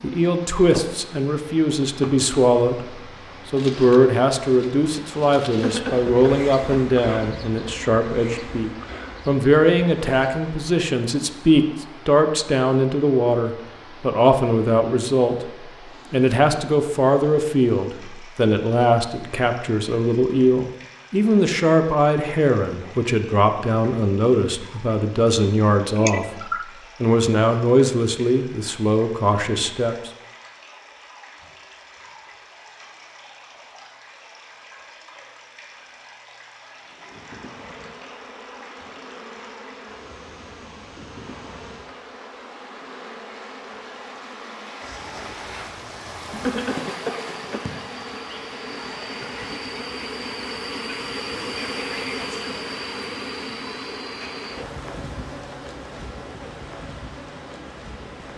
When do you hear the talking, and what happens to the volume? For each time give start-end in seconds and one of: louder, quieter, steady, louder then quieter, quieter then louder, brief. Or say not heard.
0.0-30.1 steady.